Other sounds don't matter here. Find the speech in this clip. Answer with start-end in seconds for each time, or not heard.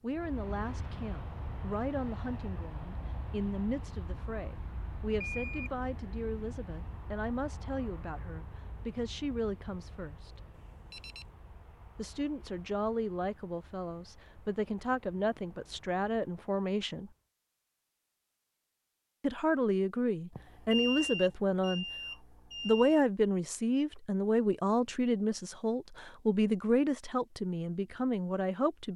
0.0-10.4, 11.9-17.1, 19.2-21.9, 22.6-28.9.